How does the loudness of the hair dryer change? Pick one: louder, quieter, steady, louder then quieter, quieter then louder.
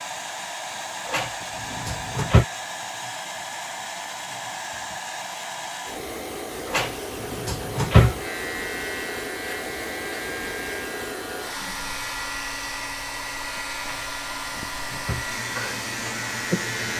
steady.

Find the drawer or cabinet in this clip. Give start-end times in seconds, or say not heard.
1.1-2.5, 6.7-8.2, 13.8-15.2.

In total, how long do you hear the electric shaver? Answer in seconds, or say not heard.
9 s.